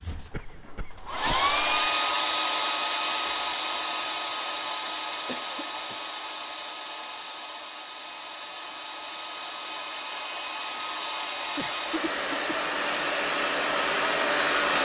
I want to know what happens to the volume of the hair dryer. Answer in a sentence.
The volume of the hair dryer goes down, then up.